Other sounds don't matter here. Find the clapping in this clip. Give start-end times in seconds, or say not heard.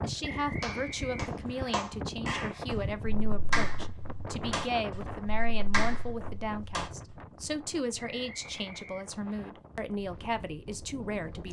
0.6-6.9.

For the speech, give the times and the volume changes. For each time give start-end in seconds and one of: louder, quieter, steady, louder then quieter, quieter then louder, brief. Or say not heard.
0.0-11.4 steady.